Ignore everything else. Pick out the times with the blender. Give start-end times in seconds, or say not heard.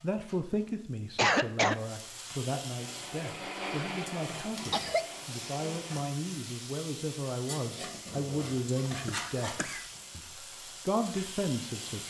2.8-6.0.